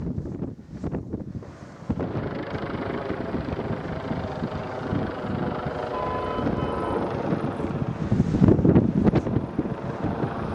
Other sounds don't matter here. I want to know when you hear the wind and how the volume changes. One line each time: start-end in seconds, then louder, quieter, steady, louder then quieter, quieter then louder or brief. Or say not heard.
0.0-10.5 louder.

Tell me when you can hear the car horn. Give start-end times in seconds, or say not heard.
5.9-7.0.